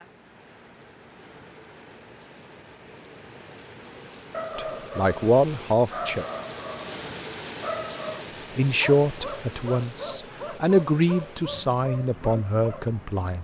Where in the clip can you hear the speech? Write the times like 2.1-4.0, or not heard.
4.5-6.2, 8.6-13.3.